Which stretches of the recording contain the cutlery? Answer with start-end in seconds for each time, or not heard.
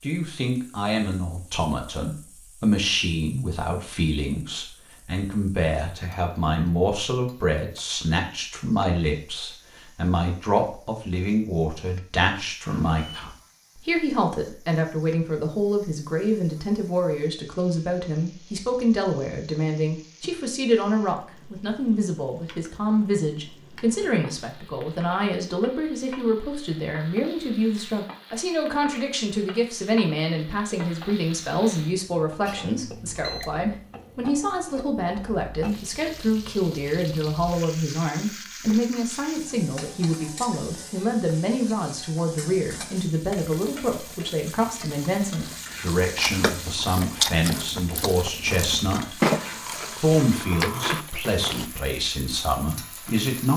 not heard.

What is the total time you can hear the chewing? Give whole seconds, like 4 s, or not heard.
8 s.